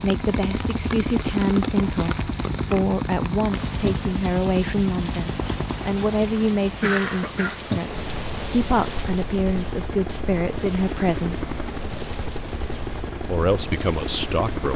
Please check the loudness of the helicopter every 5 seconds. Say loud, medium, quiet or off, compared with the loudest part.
loud, medium, loud.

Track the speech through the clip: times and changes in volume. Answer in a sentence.
You can hear the speech from 0.0 to 11.3 s, at a steady volume; and briefly from 13.2 to 14.7 s.